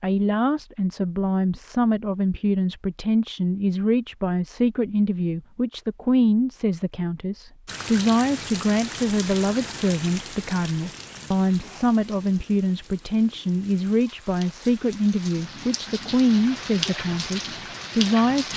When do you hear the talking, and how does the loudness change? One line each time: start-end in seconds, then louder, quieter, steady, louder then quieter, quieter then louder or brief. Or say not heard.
0.0-18.5 steady.